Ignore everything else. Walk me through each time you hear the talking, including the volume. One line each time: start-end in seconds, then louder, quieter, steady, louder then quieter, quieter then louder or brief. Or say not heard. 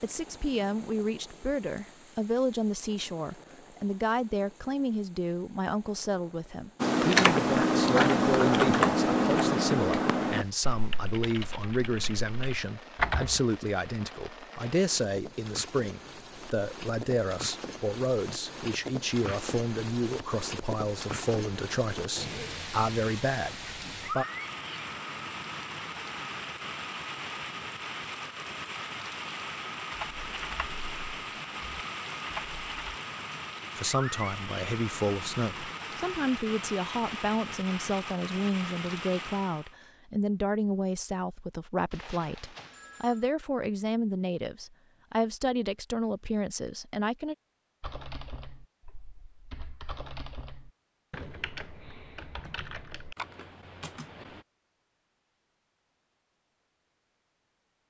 0.0-24.2 steady
33.8-47.4 steady.